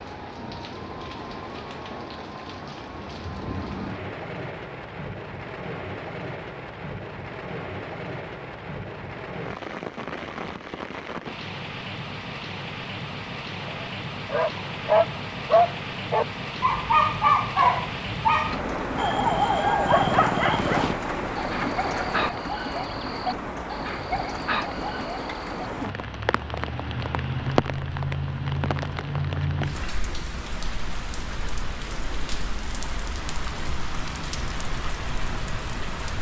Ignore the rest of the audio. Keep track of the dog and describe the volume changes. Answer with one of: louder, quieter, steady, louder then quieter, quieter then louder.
quieter.